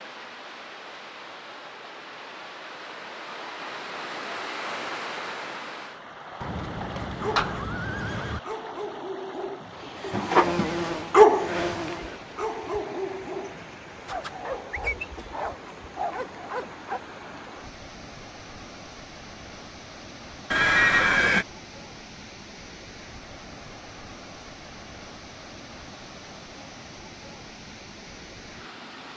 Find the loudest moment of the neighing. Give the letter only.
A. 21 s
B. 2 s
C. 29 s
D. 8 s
A.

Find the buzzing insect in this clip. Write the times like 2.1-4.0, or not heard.
10.0-12.2.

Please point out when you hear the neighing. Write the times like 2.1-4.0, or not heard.
6.4-8.4, 20.5-21.4.